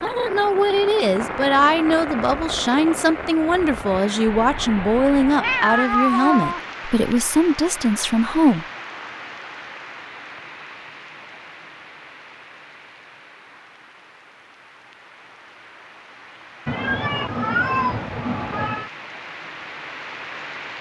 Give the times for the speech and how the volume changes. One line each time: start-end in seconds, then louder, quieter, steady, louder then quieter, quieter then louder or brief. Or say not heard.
0.0-8.7 steady.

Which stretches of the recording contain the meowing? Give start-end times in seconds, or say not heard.
4.3-6.6, 16.6-18.9.